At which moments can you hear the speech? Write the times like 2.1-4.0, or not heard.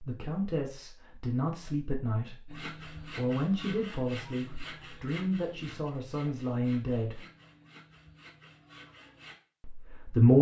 0.1-2.4, 3.1-7.2, 9.7-10.3.